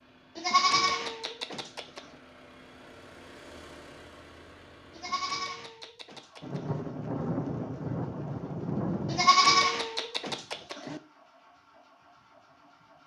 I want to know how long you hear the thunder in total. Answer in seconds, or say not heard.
3 s.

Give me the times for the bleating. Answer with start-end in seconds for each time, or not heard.
0.3-2.0, 5.0-6.8, 9.1-11.0.